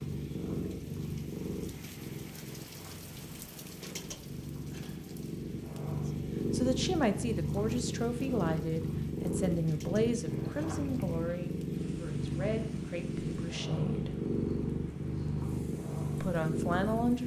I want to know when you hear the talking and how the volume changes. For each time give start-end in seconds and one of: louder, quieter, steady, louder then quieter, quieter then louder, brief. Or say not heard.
6.0-14.1 quieter
16.2-17.2 brief.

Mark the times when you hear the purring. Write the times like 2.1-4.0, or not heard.
0.0-17.2.